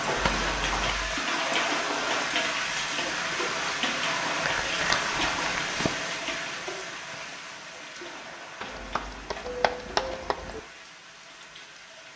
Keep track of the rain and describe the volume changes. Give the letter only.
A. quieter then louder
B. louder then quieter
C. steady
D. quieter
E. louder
D.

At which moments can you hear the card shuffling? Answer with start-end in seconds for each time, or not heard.
0.1-1.2, 4.4-6.0, 8.6-10.6.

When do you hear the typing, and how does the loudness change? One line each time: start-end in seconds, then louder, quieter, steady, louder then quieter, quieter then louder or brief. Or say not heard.
not heard.